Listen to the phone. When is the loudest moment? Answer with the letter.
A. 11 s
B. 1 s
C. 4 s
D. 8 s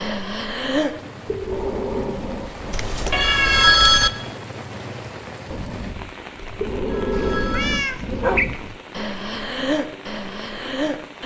C.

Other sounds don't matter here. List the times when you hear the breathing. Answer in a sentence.
The breathing can be heard from 0.0 to 2.8 s and from 5.5 to 11.2 s.